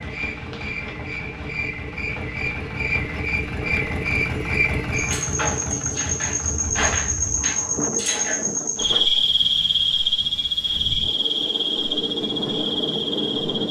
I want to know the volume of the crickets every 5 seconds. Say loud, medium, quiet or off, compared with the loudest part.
medium, loud, loud.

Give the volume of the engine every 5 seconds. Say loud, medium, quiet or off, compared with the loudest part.
loud, loud, off.